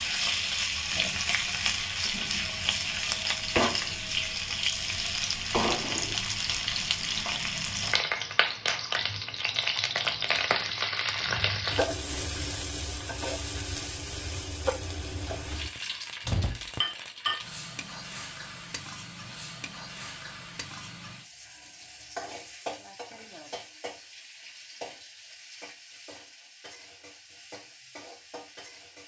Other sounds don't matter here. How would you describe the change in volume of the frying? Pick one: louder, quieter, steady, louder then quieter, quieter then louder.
quieter.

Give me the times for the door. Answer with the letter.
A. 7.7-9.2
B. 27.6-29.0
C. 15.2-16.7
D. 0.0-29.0
C.